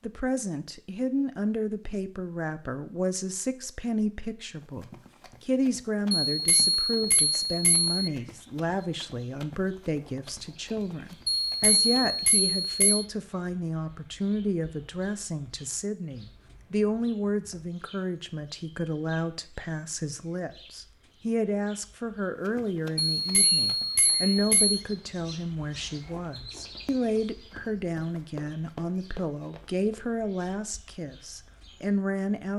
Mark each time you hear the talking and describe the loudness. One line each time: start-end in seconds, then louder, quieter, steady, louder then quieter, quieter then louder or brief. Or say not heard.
0.0-32.5 steady.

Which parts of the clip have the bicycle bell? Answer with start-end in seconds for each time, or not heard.
6.2-8.1, 11.4-13.1, 23.1-24.8.